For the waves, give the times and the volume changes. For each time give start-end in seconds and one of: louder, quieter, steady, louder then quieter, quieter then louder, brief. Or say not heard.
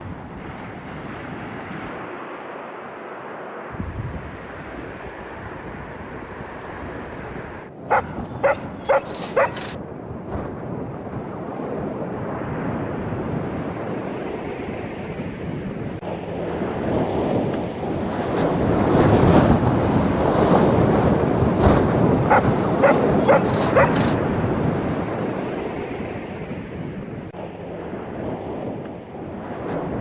0.0-29.9 louder then quieter.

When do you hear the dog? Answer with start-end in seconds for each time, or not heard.
7.9-9.8, 22.2-24.1.